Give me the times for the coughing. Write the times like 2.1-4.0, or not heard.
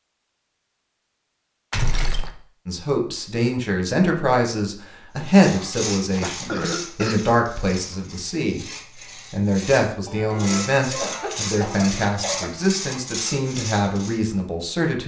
1.7-2.3, 6.0-7.2, 10.1-12.8.